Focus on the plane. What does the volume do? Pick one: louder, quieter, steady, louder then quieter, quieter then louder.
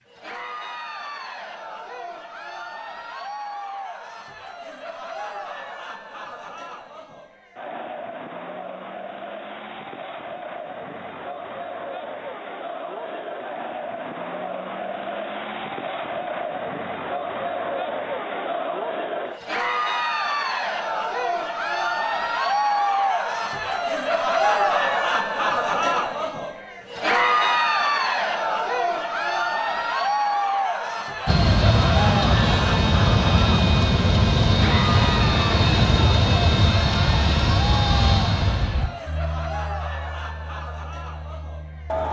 quieter.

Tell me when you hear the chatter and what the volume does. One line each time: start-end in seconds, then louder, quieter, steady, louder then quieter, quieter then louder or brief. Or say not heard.
0.1-42.0 louder then quieter.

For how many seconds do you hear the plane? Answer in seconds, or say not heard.
11 s.